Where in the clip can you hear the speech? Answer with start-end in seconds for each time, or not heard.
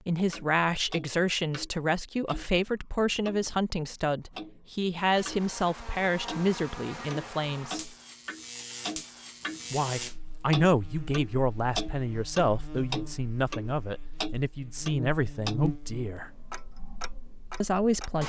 0.1-8.0, 9.7-16.4, 17.6-18.2.